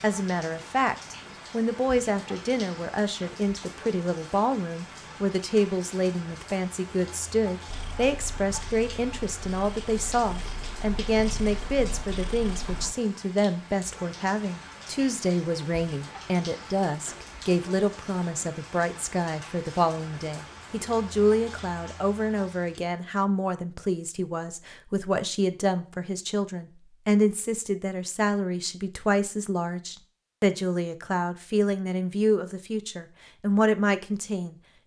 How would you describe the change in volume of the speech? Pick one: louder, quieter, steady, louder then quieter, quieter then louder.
steady.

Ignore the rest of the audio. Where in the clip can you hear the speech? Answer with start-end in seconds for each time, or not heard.
0.0-34.5.